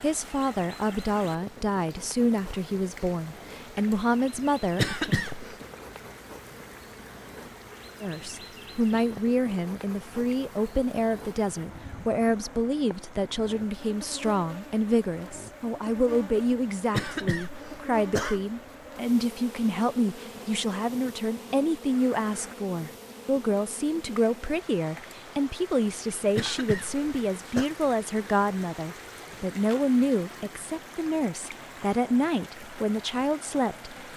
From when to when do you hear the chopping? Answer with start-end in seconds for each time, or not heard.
not heard.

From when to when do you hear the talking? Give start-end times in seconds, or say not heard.
0.0-5.2, 8.0-33.9.